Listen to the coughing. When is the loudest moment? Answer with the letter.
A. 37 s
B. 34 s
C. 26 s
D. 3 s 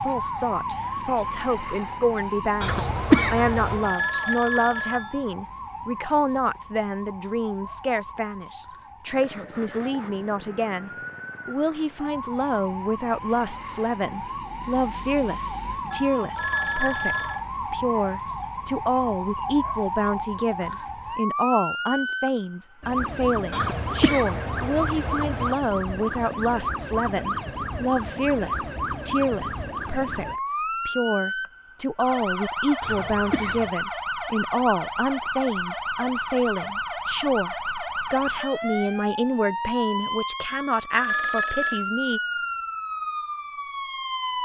D.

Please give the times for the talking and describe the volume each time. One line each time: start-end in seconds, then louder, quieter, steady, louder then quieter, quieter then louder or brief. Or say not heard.
0.0-42.2 steady.